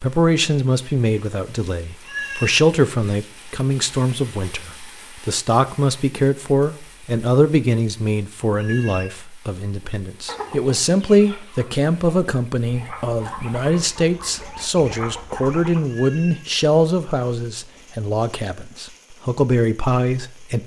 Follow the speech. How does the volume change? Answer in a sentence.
The volume of the speech stays about the same.